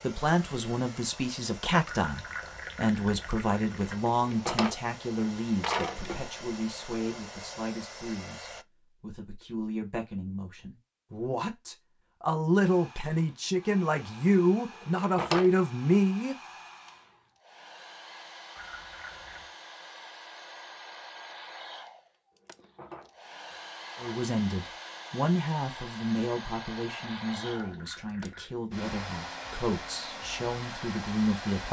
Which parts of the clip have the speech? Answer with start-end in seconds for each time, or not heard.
0.0-16.4, 24.0-31.6.